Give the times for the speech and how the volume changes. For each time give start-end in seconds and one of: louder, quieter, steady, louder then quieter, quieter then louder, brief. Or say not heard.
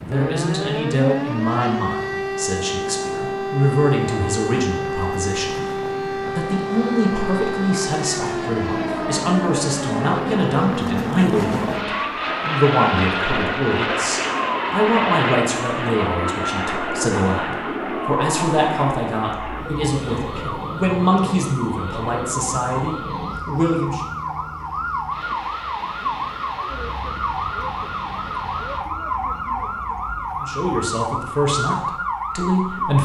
0.0-24.0 steady
30.4-33.0 brief.